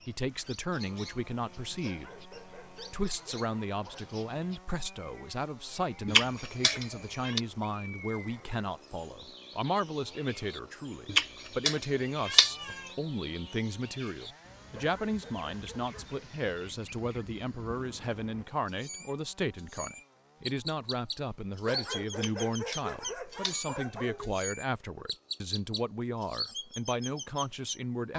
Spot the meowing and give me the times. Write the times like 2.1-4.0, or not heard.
6.0-7.4, 11.1-12.9, 22.1-24.1.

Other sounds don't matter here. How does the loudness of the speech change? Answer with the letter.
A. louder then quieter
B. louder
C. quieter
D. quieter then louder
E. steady
E.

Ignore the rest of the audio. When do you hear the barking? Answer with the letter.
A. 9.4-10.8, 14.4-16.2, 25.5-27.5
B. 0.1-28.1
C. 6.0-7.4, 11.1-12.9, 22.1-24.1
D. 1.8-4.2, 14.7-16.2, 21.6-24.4
D.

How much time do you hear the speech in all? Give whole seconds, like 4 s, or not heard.
28 s.